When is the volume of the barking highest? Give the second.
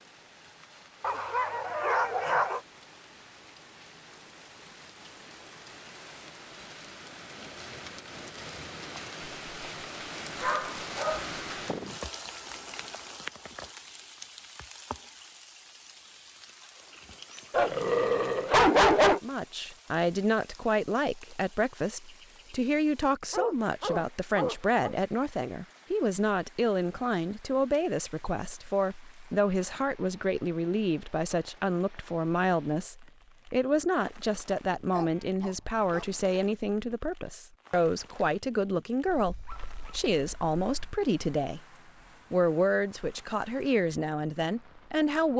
19 s.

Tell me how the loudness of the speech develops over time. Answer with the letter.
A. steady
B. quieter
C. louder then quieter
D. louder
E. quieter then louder
A.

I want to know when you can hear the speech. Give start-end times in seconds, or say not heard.
19.2-41.6, 42.3-45.3.